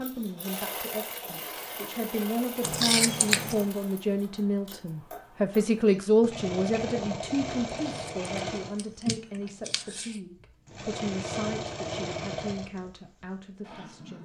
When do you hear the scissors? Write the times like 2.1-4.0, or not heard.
2.6-3.6, 7.8-10.2.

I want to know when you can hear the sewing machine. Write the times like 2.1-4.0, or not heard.
0.0-14.1.